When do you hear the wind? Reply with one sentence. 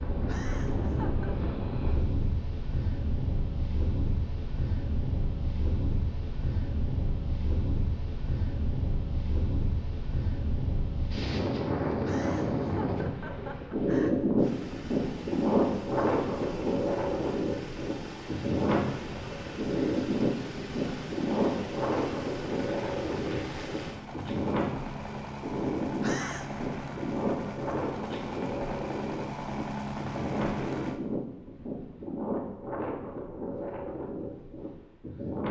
You can hear the wind from 0.0 to 35.4 s.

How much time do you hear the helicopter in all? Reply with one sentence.
You can hear the helicopter for 17 seconds altogether.